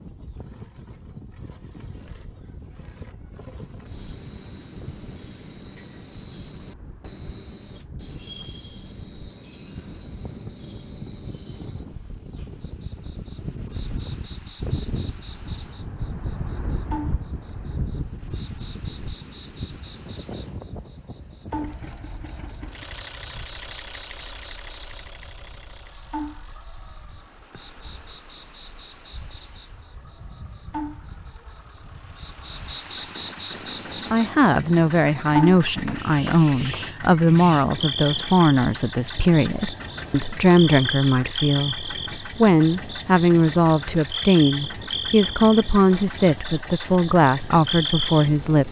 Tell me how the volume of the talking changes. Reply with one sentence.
The loudness of the talking stays about the same.